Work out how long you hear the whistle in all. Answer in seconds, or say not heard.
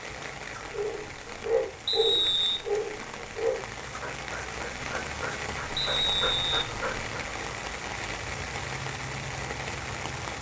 2 s.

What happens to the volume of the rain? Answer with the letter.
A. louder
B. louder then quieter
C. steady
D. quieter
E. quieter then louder
A.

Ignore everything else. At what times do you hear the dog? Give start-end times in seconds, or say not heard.
0.7-7.1.